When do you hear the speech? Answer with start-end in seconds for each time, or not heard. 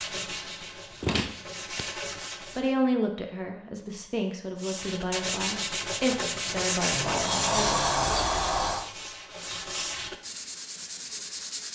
2.5-8.0.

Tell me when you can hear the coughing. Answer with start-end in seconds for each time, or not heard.
not heard.